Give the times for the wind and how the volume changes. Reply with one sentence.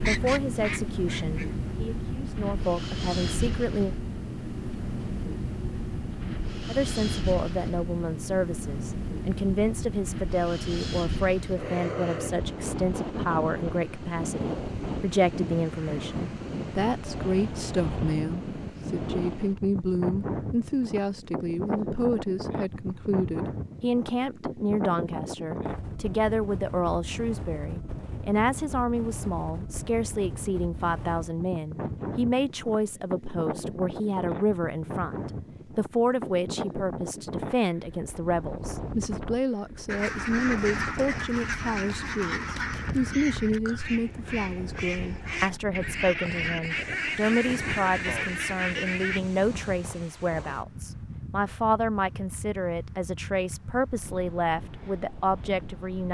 You can hear the wind from 0.0 to 56.0 s, getting quieter.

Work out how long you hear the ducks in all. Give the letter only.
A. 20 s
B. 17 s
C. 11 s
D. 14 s
C.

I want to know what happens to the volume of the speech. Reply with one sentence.
The loudness of the speech stays about the same.